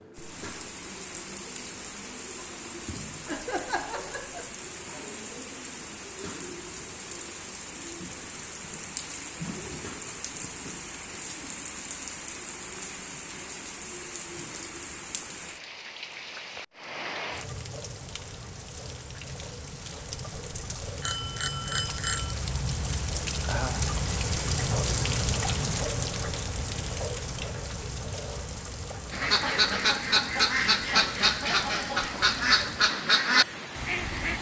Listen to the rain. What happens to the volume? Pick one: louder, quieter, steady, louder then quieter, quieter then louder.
louder then quieter.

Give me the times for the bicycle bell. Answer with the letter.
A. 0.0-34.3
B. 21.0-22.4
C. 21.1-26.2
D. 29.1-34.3
B.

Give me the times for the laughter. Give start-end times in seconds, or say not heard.
3.2-4.5, 23.4-23.9.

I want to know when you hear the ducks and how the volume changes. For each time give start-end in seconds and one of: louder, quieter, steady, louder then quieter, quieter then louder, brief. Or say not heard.
29.1-34.3 steady.